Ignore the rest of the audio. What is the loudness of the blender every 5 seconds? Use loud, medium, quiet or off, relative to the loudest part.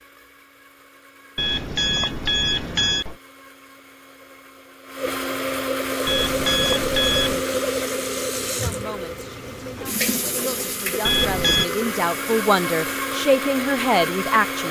quiet, loud, loud.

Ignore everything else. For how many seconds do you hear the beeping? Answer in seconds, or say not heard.
4 s.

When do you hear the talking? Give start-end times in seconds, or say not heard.
8.6-14.6.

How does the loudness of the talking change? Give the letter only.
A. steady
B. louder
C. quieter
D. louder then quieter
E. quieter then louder
B.